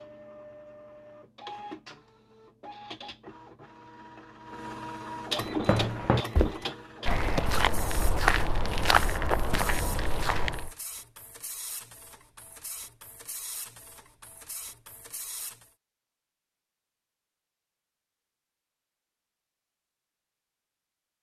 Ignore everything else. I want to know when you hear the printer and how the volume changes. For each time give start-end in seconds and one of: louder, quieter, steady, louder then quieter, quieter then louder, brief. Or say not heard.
0.0-15.7 louder then quieter.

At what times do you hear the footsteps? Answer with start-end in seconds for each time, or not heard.
5.4-10.7.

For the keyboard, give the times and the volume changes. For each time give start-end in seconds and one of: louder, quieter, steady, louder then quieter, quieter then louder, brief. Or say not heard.
not heard.